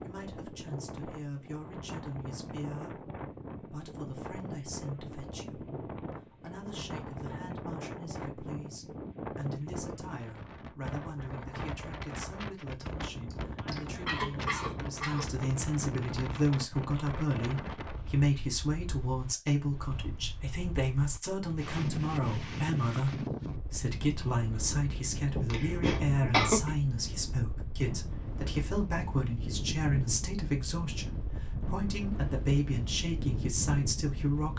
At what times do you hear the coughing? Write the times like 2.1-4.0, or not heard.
13.3-15.2, 25.3-26.8.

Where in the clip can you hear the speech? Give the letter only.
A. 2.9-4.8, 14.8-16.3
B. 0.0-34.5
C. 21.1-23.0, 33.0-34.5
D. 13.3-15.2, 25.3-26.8
B.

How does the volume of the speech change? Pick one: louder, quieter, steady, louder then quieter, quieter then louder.
louder.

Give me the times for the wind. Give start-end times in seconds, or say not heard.
0.0-34.5.